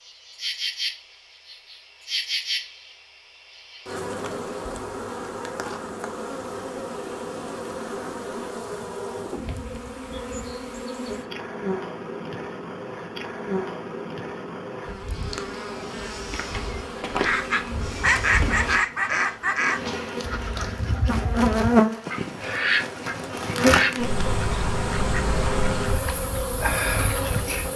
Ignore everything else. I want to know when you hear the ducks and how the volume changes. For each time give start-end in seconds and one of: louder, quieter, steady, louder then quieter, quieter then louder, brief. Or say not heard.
17.1-27.7 quieter.